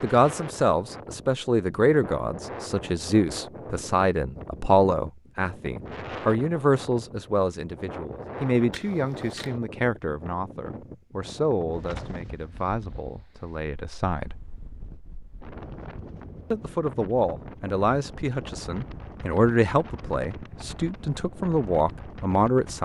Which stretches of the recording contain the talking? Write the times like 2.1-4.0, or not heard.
0.0-14.4, 16.5-22.7.